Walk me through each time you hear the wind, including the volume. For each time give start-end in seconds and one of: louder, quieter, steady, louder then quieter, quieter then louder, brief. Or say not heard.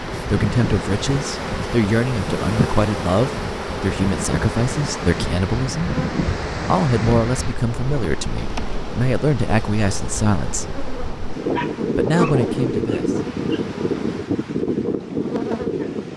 0.0-16.1 louder.